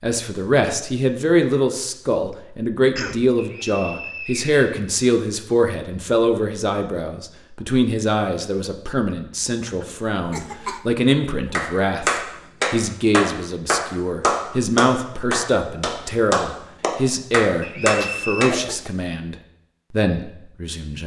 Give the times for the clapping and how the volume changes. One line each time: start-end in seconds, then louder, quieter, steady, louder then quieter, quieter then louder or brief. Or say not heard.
11.5-18.6 steady.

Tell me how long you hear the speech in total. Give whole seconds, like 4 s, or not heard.
21 s.